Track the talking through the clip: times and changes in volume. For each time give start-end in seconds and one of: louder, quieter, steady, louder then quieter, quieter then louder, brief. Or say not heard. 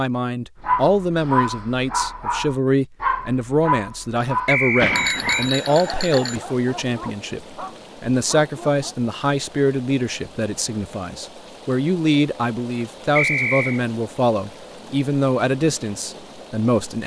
0.0-17.0 steady.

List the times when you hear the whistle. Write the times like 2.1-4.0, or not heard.
4.5-5.5, 13.2-13.8.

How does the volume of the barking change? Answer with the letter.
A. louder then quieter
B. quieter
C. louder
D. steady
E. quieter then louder
B.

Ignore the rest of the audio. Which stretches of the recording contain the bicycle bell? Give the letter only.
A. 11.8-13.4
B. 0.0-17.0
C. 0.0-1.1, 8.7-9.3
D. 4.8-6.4
D.